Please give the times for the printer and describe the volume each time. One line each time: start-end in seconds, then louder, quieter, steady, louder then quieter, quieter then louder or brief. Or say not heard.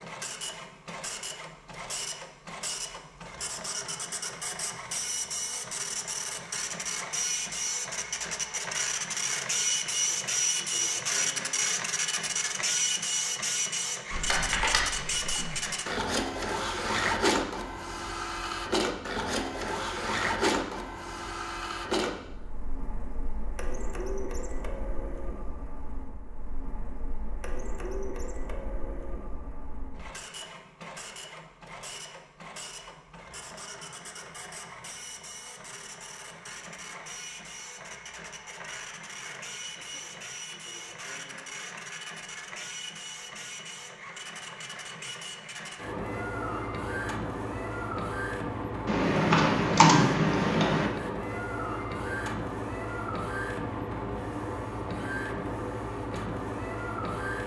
0.0-57.4 quieter then louder.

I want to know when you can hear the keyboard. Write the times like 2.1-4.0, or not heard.
14.1-15.7, 48.9-50.9.